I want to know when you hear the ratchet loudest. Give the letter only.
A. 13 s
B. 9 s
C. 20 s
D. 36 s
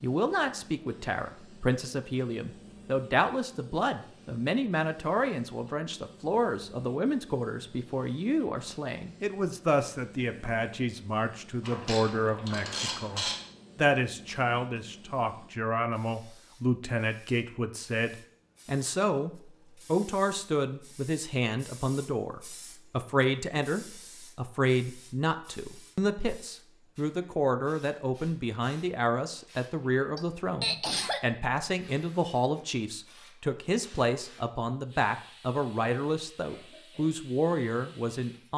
A.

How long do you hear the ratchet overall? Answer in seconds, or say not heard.
2 s.